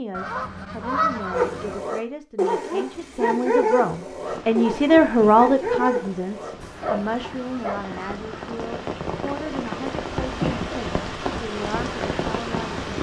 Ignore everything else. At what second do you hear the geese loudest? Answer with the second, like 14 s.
1 s.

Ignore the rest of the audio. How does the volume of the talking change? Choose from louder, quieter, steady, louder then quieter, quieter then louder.
louder then quieter.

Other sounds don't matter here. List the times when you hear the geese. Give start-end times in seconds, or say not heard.
0.1-1.8, 6.8-8.5.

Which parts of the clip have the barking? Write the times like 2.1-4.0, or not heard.
1.3-7.8.